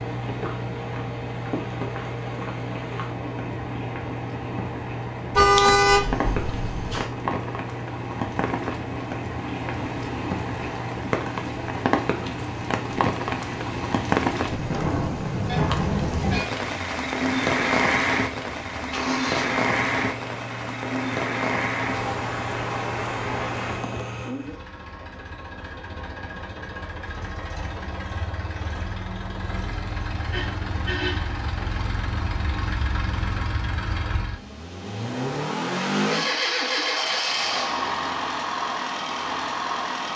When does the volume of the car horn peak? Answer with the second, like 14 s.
6 s.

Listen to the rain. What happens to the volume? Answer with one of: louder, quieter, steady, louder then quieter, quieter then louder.
louder.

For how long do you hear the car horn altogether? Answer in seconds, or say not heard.
4 s.